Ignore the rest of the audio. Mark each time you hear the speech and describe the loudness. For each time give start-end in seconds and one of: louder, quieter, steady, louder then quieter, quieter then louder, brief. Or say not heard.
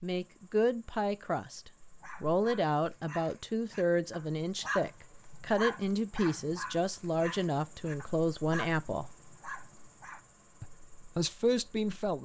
0.0-9.1 steady
10.6-12.2 brief.